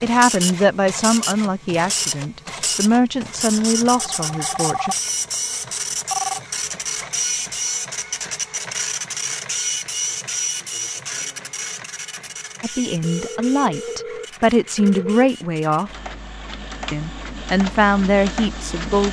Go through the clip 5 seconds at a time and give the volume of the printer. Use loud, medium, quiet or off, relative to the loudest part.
loud, loud, medium, medium.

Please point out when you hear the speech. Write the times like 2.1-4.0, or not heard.
0.0-5.0, 12.6-15.9, 16.9-19.0.